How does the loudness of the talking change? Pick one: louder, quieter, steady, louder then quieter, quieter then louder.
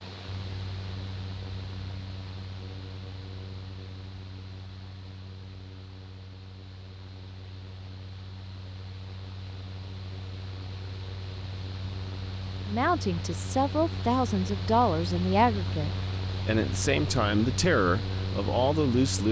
steady.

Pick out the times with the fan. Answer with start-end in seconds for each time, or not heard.
0.0-19.2.